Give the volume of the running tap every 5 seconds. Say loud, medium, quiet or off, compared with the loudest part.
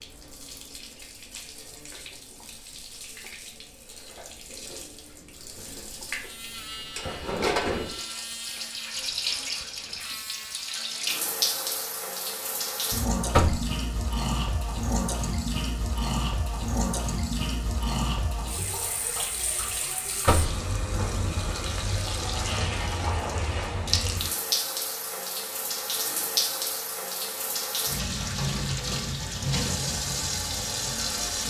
quiet, loud, loud, loud, loud, loud, loud.